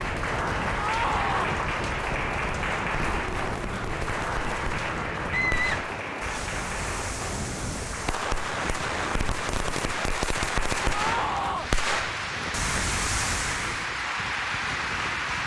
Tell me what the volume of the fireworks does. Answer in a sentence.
The volume of the fireworks goes up.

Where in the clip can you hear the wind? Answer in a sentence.
The wind can be heard from 0.0 to 15.4 s.